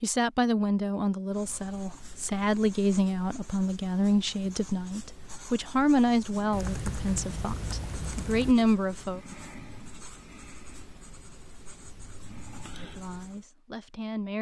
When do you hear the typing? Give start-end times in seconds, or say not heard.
6.5-8.6.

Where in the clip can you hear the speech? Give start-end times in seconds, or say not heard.
0.0-9.2, 12.8-14.3.